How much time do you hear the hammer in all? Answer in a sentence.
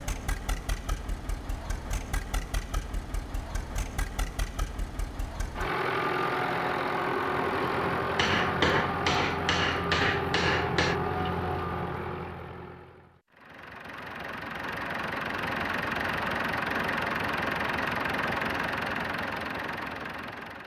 You can hear the hammer for 3 seconds altogether.